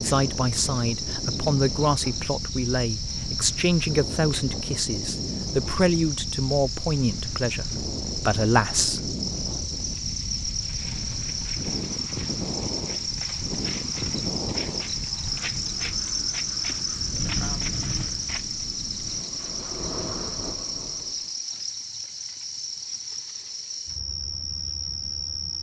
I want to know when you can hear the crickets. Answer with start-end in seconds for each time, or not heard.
0.0-25.5.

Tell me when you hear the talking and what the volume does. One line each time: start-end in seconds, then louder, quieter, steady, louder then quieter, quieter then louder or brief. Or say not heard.
0.0-9.2 steady.